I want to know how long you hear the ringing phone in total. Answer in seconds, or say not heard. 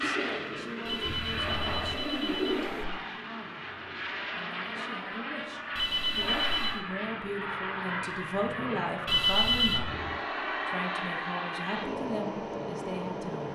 4 s.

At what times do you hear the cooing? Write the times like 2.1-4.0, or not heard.
0.0-2.9.